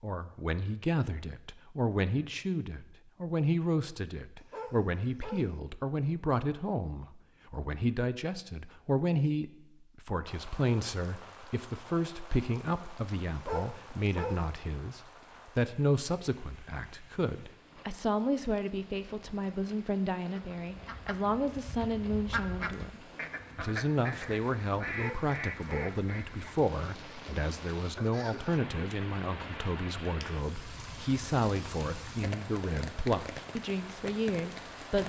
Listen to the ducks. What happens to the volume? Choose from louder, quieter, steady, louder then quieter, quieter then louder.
louder.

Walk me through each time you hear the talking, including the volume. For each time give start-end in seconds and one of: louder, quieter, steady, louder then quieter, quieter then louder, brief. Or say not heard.
0.0-35.0 steady.